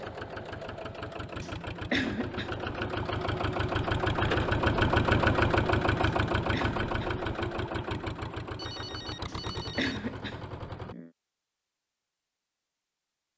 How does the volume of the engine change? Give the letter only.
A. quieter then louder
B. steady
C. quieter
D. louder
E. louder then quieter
E.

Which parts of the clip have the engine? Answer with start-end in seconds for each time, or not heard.
0.0-10.9.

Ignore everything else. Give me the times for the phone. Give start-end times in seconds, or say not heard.
8.6-10.0.